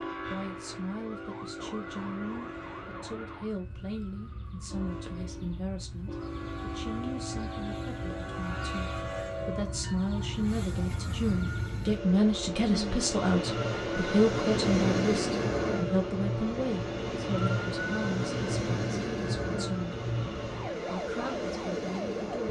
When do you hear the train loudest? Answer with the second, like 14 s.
15 s.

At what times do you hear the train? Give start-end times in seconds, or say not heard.
0.0-22.4.